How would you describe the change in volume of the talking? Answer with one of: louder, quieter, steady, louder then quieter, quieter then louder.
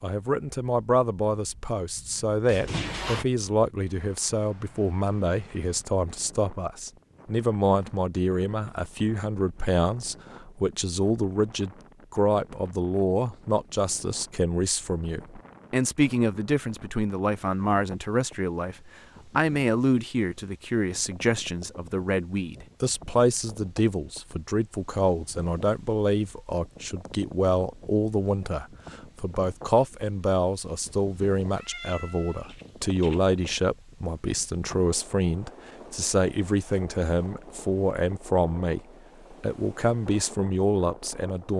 steady.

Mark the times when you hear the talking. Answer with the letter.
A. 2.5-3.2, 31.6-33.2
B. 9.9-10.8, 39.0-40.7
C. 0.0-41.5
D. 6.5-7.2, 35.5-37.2
C.